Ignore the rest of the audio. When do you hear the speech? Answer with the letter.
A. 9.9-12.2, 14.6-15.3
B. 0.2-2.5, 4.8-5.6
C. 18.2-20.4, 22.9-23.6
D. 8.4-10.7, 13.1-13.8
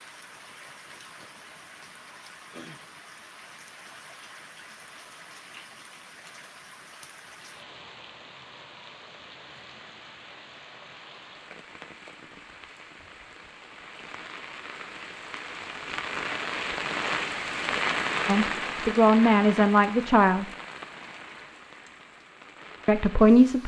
C.